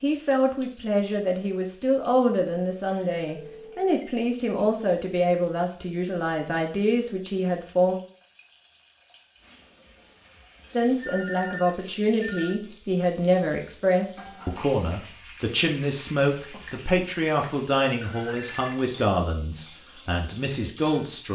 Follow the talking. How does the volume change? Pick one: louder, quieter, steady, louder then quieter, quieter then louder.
steady.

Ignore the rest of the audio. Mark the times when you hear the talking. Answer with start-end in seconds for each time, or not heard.
0.0-8.0, 10.8-21.2.